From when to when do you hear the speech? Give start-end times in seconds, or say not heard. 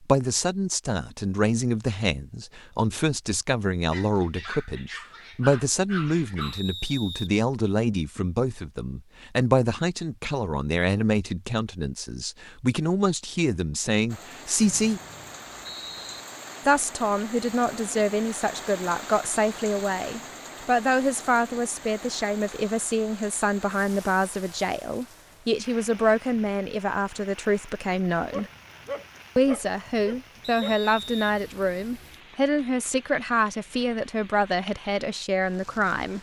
0.0-15.0, 16.6-28.4, 29.4-36.1.